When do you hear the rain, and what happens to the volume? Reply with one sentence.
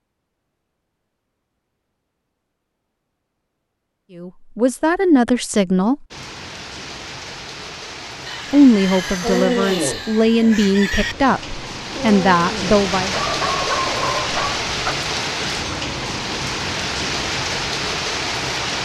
The rain can be heard from 6.1 to 18.8 s, getting louder.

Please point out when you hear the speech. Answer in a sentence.
The speech can be heard from 4.2 to 6.0 s and from 8.5 to 13.2 s.